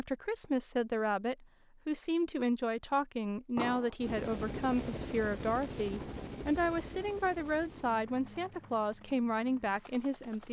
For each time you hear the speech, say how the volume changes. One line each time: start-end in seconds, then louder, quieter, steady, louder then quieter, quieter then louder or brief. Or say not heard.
0.0-10.4 steady.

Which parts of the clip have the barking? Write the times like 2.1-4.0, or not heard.
not heard.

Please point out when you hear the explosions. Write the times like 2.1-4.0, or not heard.
3.5-4.0.